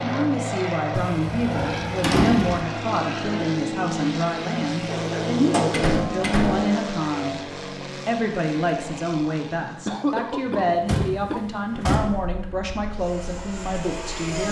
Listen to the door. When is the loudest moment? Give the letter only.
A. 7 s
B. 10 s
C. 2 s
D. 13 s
C.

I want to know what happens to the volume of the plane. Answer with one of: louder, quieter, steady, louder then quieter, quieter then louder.
quieter.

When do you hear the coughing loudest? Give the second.
10 s.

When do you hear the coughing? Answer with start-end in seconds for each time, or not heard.
9.7-11.4.